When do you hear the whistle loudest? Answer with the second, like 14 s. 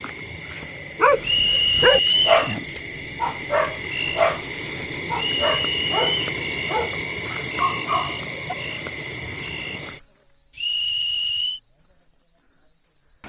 2 s.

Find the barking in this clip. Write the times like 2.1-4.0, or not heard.
0.9-8.6.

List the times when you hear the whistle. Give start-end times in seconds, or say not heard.
1.2-2.4, 5.2-6.2, 10.6-11.6.